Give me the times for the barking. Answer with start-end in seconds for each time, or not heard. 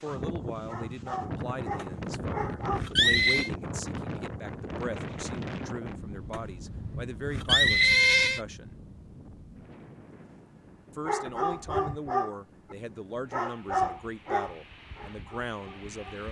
0.0-2.8, 11.1-16.2.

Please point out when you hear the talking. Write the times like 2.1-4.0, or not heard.
0.0-8.8, 10.9-16.2.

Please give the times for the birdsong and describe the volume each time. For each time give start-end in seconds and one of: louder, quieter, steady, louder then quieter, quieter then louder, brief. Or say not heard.
not heard.